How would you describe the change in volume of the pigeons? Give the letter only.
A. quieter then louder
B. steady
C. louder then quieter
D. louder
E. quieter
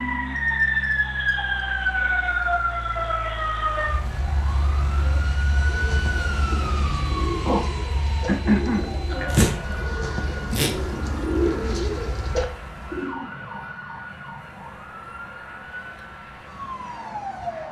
D.